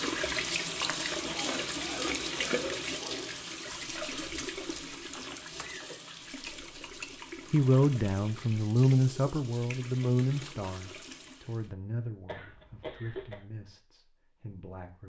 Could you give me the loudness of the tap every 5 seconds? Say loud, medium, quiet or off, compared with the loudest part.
loud, medium, quiet.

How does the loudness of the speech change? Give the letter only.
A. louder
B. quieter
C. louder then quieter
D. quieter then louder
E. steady
B.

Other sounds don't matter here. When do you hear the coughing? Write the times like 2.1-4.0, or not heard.
1.2-3.2, 5.5-6.2, 12.2-13.3.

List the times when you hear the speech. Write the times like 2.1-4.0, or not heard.
7.5-15.0.